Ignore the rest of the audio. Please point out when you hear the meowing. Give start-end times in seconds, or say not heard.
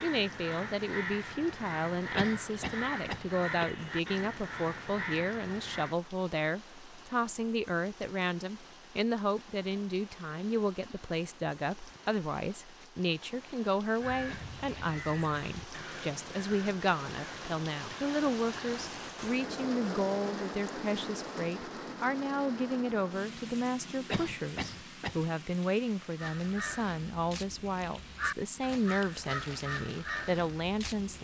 not heard.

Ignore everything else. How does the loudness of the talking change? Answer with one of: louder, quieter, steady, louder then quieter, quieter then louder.
steady.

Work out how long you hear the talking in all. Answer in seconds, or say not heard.
31 s.